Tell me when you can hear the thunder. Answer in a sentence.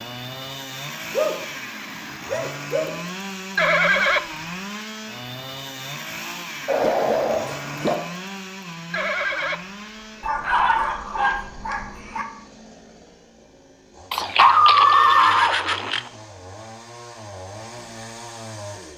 The thunder can't be heard in this clip.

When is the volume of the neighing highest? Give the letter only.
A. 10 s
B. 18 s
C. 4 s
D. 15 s
C.